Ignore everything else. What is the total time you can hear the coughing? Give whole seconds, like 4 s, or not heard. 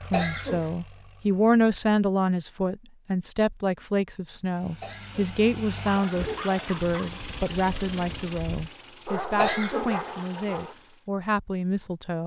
3 s.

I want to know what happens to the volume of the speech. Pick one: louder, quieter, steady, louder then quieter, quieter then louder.
quieter.